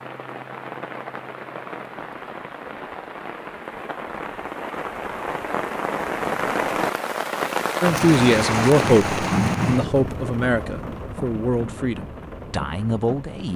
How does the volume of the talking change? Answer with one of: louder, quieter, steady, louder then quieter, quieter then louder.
quieter.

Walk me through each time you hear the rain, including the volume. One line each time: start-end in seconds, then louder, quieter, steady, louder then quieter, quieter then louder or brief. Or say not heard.
0.0-13.5 louder then quieter.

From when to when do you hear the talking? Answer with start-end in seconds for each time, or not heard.
7.8-13.5.